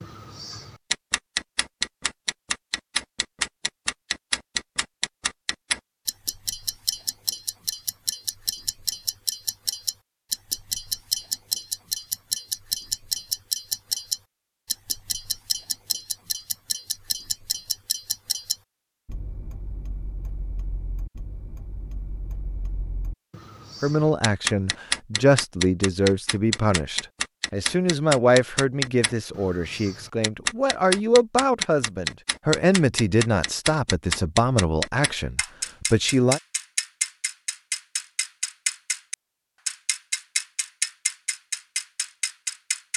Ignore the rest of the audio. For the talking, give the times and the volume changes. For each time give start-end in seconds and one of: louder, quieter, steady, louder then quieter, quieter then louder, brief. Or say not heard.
23.8-36.4 steady.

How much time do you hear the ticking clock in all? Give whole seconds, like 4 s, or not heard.
43 s.